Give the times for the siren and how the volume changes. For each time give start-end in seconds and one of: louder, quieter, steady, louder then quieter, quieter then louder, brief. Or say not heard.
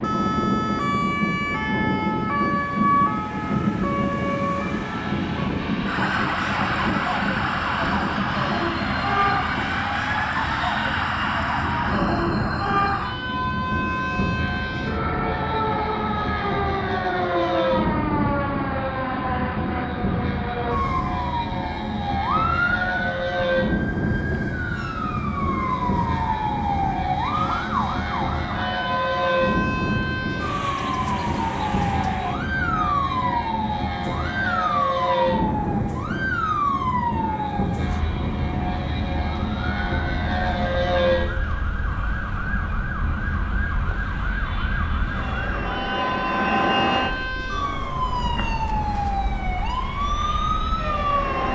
0.0-51.4 steady.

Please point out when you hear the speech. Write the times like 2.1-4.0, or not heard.
not heard.